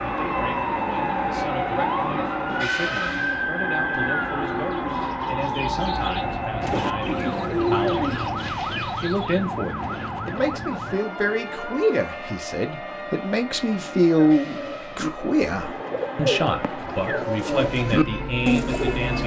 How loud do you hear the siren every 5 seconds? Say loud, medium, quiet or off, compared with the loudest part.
loud, loud, medium, medium.